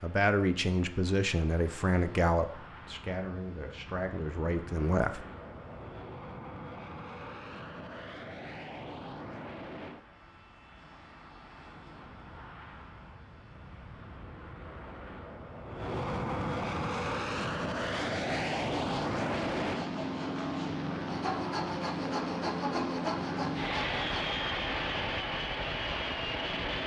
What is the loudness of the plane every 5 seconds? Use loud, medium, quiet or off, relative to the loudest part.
quiet, medium, quiet, loud, loud, loud.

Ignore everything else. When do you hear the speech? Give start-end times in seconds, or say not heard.
0.0-5.2.